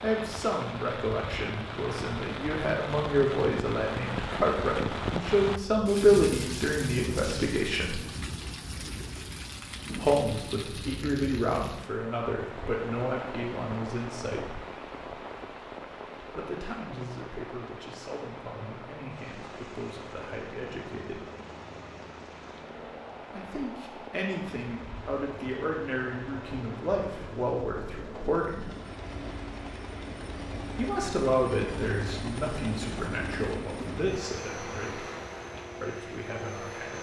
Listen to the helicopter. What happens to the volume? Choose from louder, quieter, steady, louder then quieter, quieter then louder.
louder.